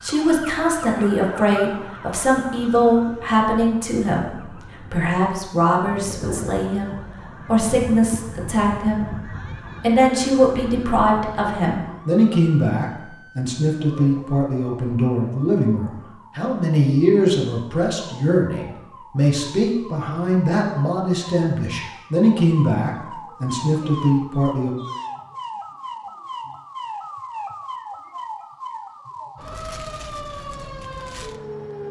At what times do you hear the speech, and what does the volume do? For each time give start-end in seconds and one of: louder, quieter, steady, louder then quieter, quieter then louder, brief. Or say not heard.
0.0-24.8 steady.